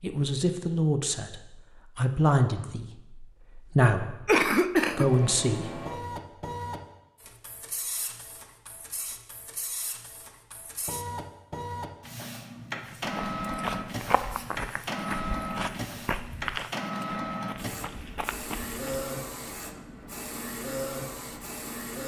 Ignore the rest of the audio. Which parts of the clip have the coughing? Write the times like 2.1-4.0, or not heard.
4.2-5.1.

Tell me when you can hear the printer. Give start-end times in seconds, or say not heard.
4.9-22.0.